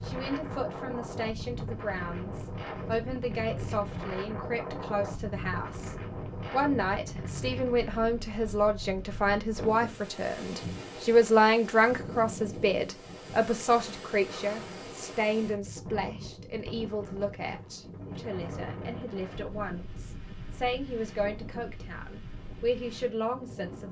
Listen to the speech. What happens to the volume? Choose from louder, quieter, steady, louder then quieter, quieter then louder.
louder then quieter.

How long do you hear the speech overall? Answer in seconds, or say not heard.
24 s.